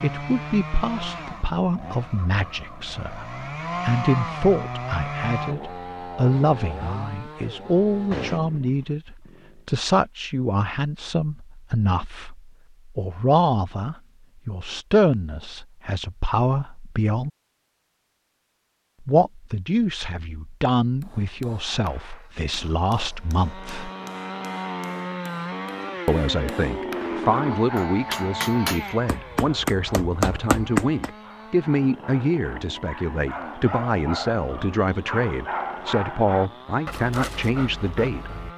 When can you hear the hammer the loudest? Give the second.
31 s.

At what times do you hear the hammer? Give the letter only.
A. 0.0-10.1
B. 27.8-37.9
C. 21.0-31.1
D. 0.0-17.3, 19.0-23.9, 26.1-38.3
C.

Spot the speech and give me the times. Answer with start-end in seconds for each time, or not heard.
0.0-17.3, 19.0-23.9, 26.1-38.3.